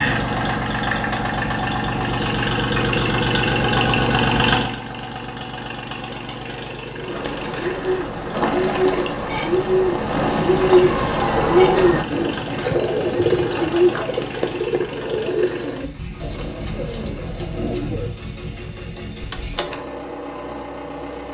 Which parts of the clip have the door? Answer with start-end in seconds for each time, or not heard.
19.2-19.9.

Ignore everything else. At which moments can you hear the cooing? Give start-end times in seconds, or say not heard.
7.0-18.2.